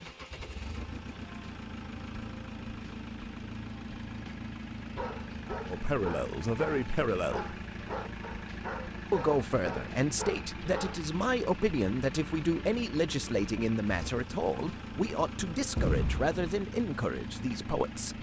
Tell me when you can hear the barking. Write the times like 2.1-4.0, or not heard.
5.0-11.1.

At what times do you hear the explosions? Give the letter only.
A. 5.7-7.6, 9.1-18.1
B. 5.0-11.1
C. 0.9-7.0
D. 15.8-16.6
D.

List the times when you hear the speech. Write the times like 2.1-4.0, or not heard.
5.7-7.6, 9.1-18.1.